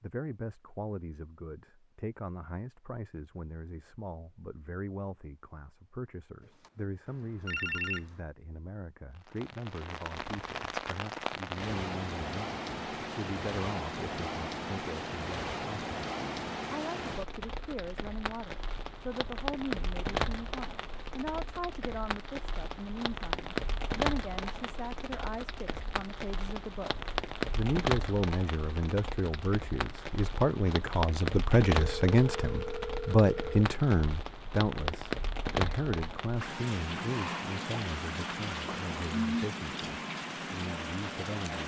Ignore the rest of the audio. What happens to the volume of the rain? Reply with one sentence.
The volume of the rain stays about the same.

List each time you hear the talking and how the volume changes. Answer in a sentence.
You can hear the talking from 0.0 to 41.6 s, getting louder.